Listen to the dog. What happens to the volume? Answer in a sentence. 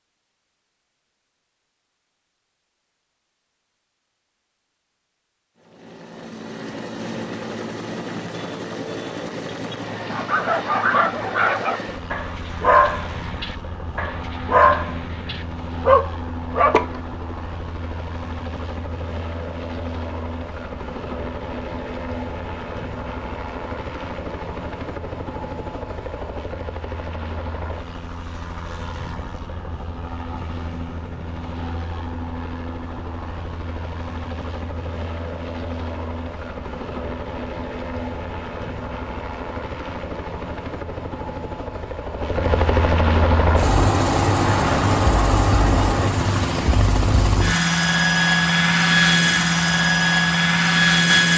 The loudness of the dog goes down, then up.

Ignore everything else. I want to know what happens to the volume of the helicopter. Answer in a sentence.
The volume of the helicopter goes up.